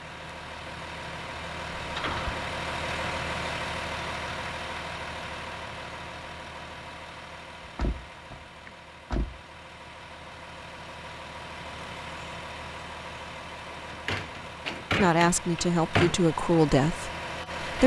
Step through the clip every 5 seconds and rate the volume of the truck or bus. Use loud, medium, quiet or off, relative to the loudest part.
loud, medium, medium, loud.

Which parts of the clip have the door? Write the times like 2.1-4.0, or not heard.
1.8-2.5, 7.6-9.4, 13.9-16.2.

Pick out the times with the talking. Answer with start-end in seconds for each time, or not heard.
14.9-17.8.